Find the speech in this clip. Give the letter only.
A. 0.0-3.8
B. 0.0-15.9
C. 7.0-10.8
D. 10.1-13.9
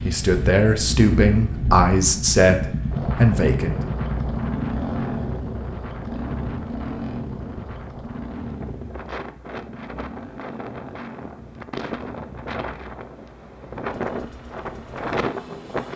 A.